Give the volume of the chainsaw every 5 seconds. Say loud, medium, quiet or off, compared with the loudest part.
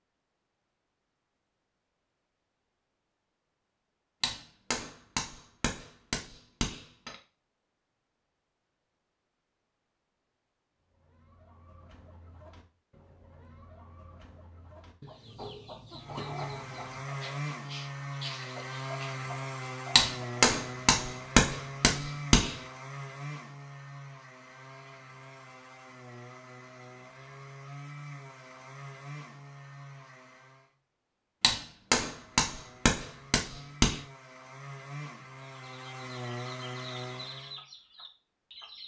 off, off, off, loud, loud, medium, medium, loud.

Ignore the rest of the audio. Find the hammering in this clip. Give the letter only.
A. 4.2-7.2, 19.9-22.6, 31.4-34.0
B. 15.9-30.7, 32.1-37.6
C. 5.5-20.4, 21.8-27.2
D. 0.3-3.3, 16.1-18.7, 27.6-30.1
A.